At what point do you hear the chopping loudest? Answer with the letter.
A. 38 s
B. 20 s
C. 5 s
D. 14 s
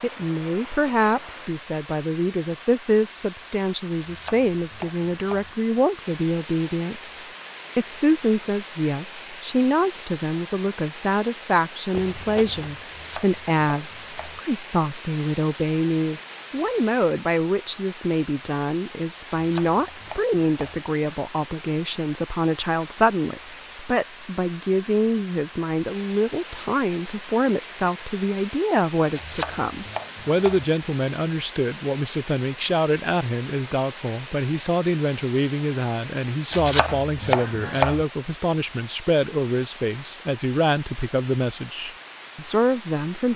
A.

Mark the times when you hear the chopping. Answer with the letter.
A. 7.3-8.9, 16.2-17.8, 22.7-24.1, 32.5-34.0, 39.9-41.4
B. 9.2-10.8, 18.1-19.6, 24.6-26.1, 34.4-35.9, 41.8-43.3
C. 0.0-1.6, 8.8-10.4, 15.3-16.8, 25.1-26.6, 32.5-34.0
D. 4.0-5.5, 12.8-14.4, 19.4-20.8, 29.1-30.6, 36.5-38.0
D.